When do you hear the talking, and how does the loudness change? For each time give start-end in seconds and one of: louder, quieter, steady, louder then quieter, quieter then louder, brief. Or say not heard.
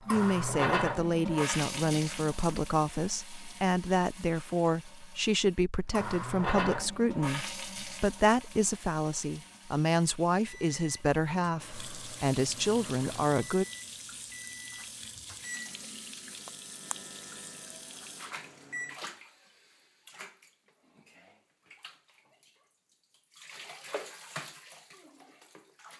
0.1-13.7 steady.